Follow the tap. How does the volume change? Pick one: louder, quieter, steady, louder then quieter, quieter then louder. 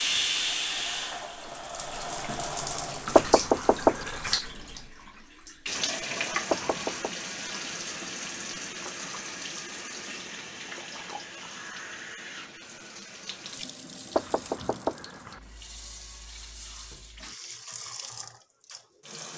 quieter.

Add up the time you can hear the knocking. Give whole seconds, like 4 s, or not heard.
3 s.